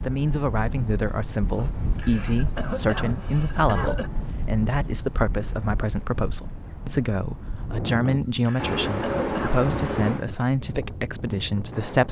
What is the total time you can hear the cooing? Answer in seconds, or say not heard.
2 s.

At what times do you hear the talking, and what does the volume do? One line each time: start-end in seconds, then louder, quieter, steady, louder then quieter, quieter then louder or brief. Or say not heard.
0.0-12.0 steady.